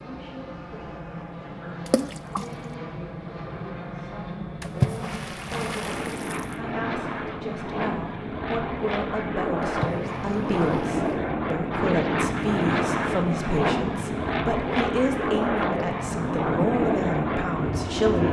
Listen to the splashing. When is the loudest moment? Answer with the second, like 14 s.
5 s.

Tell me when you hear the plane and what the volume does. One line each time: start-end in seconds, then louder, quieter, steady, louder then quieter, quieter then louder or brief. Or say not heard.
0.0-18.2 louder.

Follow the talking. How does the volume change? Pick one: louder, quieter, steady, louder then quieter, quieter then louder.
louder.